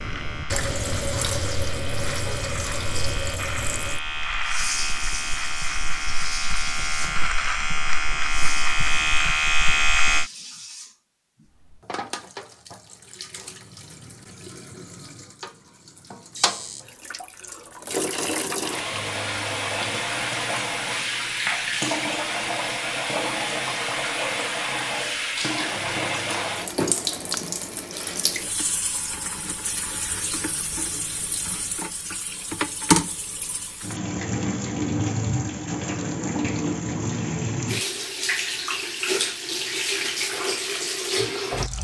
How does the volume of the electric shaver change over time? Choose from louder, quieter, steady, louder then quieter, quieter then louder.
louder.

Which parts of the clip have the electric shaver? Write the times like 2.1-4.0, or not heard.
0.0-10.2.